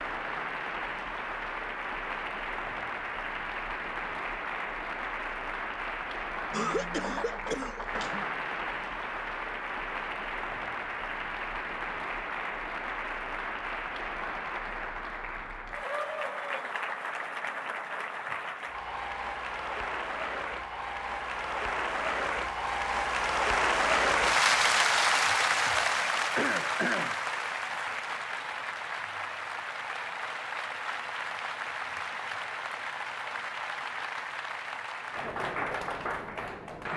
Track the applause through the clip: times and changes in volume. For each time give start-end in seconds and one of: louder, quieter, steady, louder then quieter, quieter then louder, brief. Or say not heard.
0.0-36.9 louder then quieter.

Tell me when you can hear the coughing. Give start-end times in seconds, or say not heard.
6.5-8.2, 26.4-27.2.